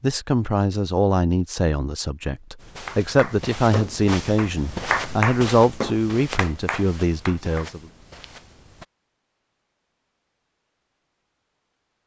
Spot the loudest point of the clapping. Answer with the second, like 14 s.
5 s.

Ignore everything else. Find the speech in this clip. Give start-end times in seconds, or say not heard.
0.0-7.8.